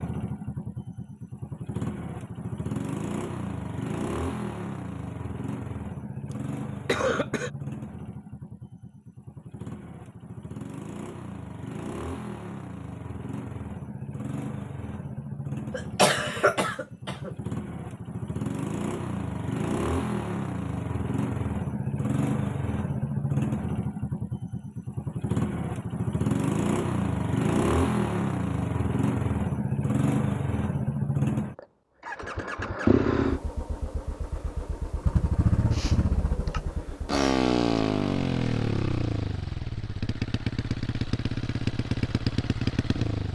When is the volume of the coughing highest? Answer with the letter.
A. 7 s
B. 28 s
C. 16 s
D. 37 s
C.